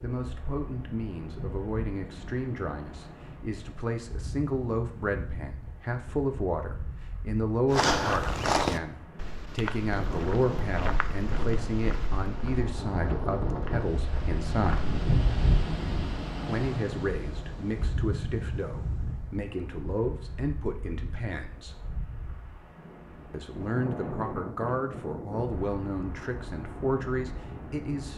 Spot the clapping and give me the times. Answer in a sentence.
The clapping can't be heard in this clip.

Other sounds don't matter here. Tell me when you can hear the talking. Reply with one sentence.
You can hear the talking from 0.0 to 14.8 s, from 16.4 to 21.9 s and from 23.3 to 28.1 s.